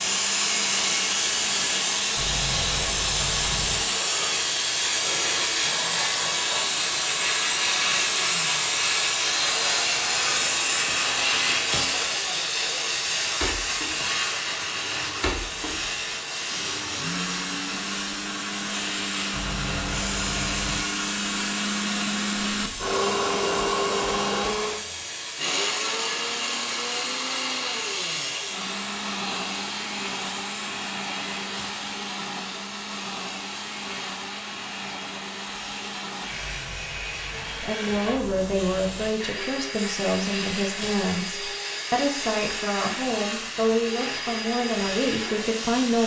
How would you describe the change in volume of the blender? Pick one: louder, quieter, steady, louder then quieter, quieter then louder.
louder then quieter.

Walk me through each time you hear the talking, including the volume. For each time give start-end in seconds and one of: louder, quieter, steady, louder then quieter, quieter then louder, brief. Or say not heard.
37.5-46.0 steady.